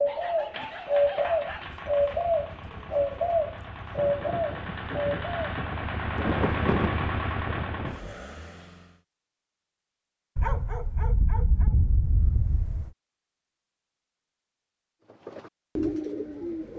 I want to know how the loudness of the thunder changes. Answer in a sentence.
The loudness of the thunder goes up, then down.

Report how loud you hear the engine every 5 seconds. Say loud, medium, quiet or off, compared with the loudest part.
medium, loud, off, off.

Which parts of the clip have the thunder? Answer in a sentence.
The thunder can be heard from 4.0 to 8.2 s.